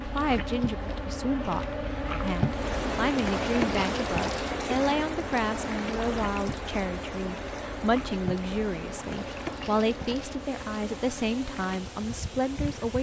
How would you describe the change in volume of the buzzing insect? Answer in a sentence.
The volume of the buzzing insect goes down.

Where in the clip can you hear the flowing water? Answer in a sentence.
You can hear the flowing water from 2.5 to 12.9 s.